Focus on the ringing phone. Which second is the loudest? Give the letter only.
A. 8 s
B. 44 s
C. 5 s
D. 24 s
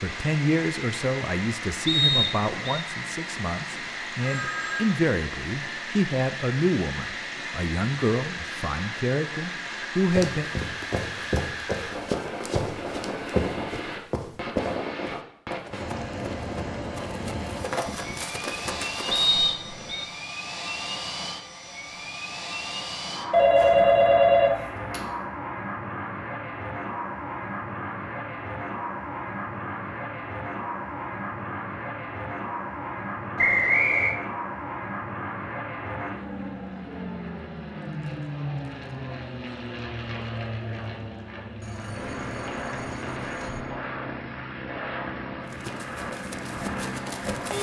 D.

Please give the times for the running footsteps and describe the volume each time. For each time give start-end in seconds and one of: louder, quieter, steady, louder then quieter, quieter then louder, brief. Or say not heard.
10.1-19.4 quieter then louder
45.4-47.5 brief.